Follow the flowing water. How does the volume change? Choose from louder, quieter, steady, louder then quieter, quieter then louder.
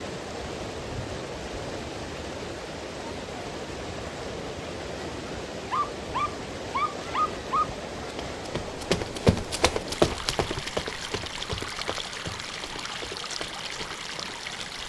steady.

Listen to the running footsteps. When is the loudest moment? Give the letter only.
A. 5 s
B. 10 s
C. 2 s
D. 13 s
B.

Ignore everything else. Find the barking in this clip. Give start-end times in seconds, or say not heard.
5.7-7.7.